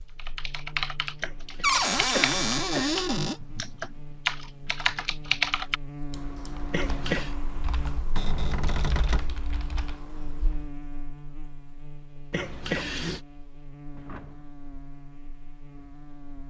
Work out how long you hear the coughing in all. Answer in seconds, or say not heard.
3 s.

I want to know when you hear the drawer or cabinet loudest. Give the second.
2 s.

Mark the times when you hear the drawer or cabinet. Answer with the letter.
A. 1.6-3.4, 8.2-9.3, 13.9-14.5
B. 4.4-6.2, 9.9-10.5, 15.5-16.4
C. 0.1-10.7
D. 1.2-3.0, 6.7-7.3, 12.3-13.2
A.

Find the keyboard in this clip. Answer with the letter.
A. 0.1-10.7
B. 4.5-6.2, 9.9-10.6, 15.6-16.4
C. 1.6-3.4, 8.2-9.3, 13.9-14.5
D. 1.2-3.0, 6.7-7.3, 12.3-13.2
A.